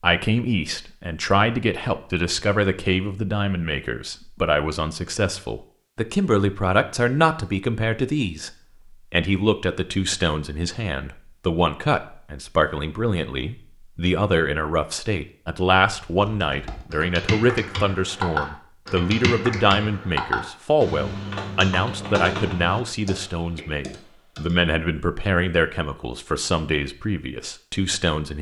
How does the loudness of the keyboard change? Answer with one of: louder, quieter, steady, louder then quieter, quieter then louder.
louder then quieter.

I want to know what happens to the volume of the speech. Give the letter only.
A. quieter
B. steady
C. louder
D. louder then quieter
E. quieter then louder
B.